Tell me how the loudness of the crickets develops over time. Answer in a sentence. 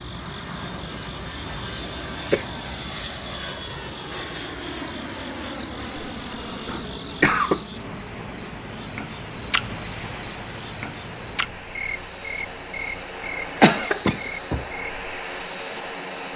The loudness of the crickets goes up, then down.